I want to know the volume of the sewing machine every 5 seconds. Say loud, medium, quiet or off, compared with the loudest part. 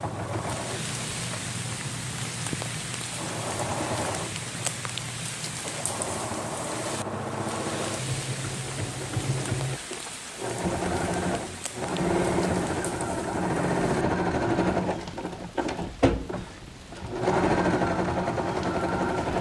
medium, medium, loud, loud.